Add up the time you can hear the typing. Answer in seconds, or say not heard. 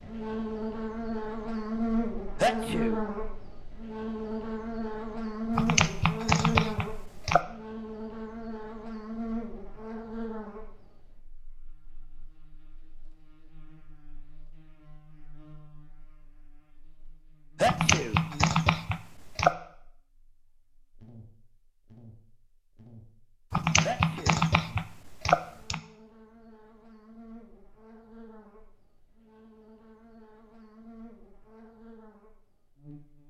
6 s.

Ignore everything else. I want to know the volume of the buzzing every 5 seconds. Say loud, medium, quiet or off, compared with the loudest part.
loud, loud, quiet, quiet, quiet, quiet, quiet.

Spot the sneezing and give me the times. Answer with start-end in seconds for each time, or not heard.
2.4-3.0, 17.6-18.2, 23.8-24.4.